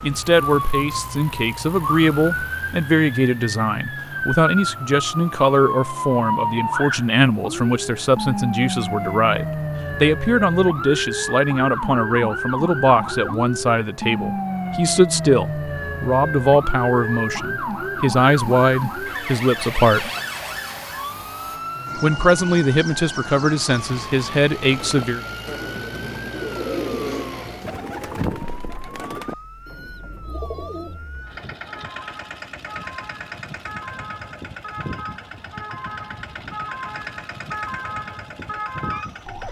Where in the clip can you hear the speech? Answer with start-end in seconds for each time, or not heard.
0.0-20.1, 21.9-25.2.